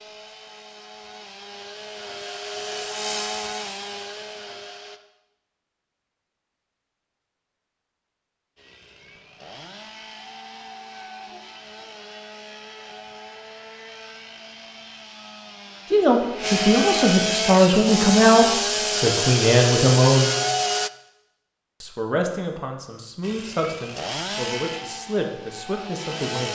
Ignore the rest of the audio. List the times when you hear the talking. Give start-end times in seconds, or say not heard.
15.9-20.3, 21.8-26.4.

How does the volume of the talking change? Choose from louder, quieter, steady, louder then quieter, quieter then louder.
quieter.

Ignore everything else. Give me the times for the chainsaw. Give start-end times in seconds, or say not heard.
0.0-5.0, 8.6-20.9, 23.2-26.4.